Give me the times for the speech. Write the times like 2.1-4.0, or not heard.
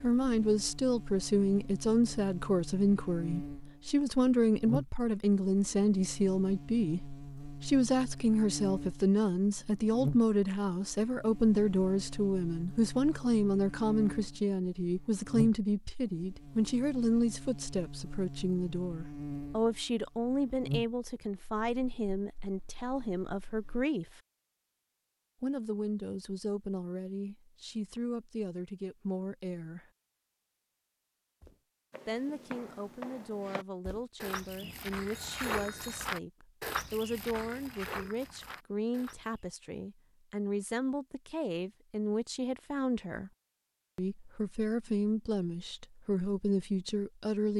0.0-24.2, 25.4-29.9, 32.0-43.3, 44.0-47.5.